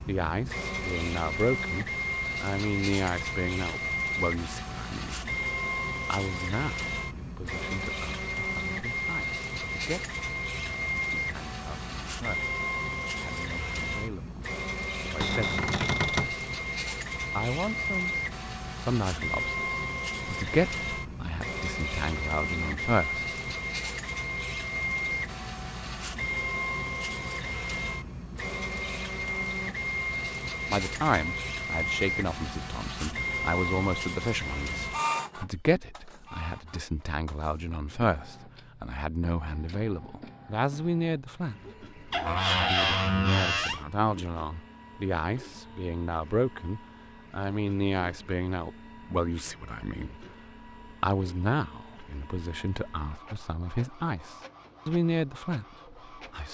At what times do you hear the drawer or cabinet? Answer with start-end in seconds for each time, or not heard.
15.2-16.4, 42.1-43.9.